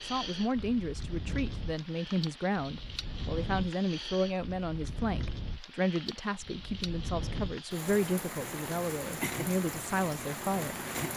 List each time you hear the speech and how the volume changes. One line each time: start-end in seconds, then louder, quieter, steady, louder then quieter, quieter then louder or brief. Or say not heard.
0.0-11.1 steady.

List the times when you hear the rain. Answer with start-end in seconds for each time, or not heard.
0.0-11.1.